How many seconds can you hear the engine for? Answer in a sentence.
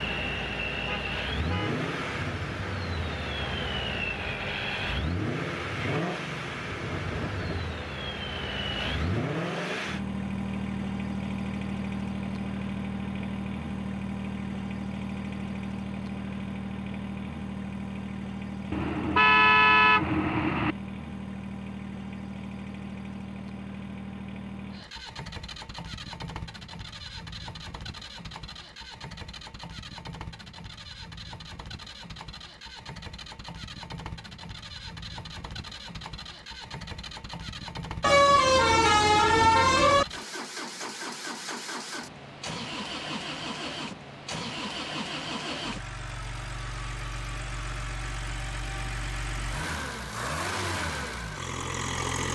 The engine can be heard for 52 seconds in total.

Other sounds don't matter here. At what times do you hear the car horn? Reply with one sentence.
The car horn can be heard from 0.8 to 1.8 s, from 18.7 to 20.8 s and from 38.0 to 40.0 s.